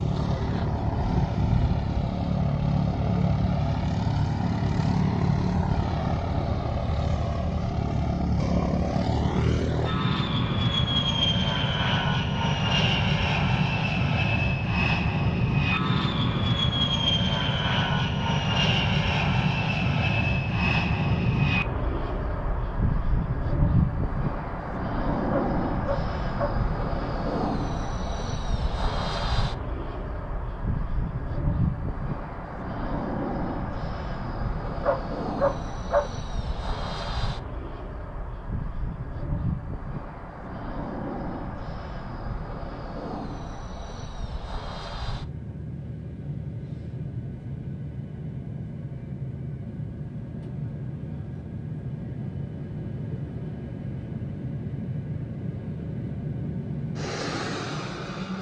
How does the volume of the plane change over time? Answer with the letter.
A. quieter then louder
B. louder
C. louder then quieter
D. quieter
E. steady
D.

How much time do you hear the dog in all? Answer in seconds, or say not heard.
3 s.